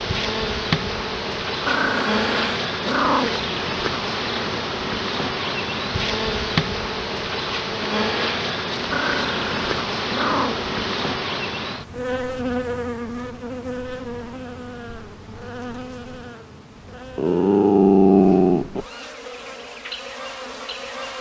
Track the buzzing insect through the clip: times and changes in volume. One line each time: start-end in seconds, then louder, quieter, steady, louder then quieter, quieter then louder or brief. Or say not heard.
0.0-21.1 quieter.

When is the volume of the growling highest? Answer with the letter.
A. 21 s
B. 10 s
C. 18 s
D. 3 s
C.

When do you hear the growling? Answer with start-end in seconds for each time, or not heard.
1.6-3.5, 8.9-10.7, 17.1-18.9.